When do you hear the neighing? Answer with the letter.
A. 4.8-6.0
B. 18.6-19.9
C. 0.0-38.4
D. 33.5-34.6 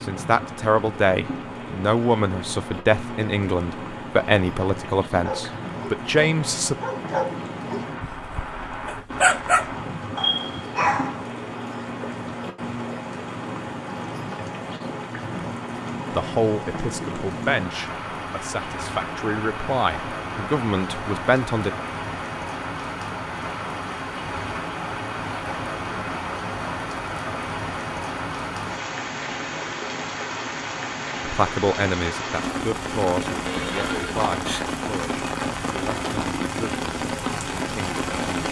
D.